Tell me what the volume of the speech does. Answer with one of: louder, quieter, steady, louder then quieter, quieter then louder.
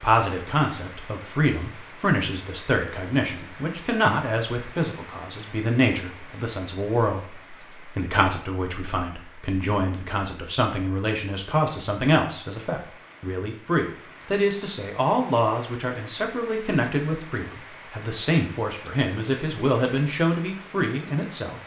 steady.